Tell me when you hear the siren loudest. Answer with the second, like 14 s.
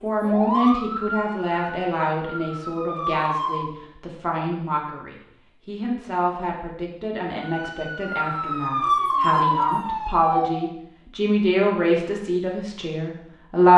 9 s.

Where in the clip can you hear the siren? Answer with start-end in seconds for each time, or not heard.
0.0-3.7, 7.4-10.7.